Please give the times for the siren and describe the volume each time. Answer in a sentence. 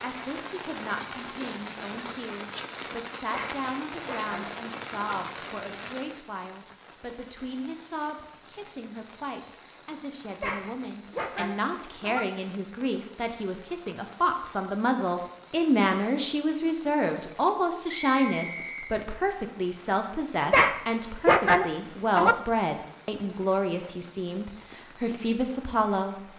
You can't hear the siren here.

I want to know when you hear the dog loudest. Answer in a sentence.
The loudest moment of the dog is at 21 seconds.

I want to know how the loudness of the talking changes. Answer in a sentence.
The volume of the talking goes up.